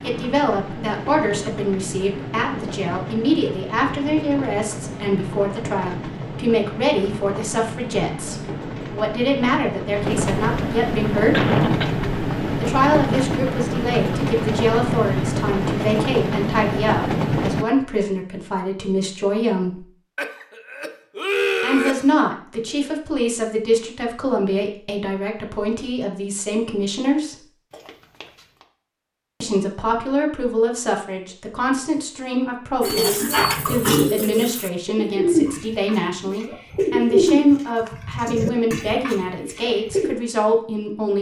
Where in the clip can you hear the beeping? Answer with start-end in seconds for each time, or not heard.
32.8-33.8.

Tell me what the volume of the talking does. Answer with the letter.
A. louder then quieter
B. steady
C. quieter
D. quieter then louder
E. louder
B.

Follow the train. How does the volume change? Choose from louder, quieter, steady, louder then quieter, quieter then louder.
louder.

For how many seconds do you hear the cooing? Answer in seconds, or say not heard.
7 s.